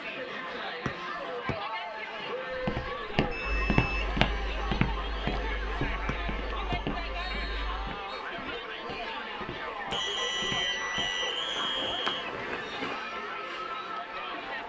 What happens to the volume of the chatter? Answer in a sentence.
The loudness of the chatter stays about the same.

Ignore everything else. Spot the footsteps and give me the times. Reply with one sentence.
You can hear the footsteps from 2.5 to 12.9 s.